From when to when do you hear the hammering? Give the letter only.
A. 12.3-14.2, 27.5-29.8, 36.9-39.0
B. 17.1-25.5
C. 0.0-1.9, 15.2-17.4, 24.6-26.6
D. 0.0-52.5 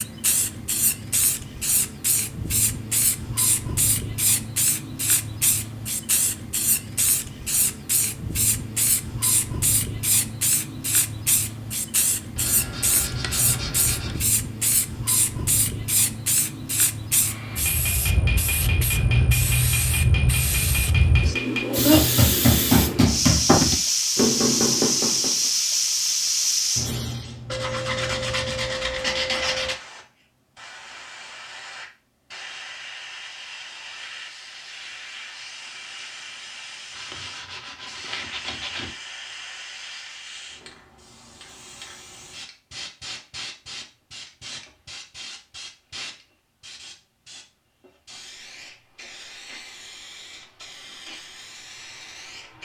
B.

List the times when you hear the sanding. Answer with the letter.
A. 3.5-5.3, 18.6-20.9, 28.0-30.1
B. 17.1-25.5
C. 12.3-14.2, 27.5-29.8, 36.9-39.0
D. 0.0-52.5
C.